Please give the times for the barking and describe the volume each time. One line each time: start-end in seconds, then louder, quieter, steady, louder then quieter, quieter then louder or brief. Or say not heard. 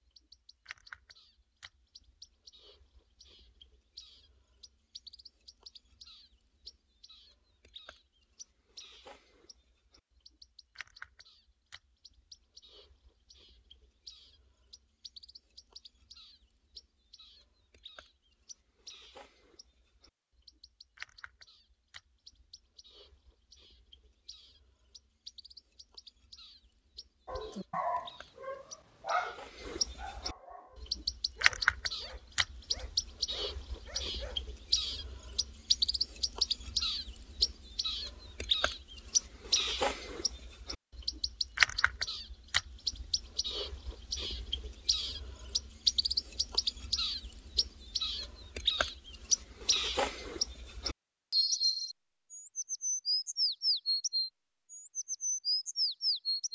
27.2-34.4 quieter.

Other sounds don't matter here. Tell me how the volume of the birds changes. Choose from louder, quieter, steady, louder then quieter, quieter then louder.
louder.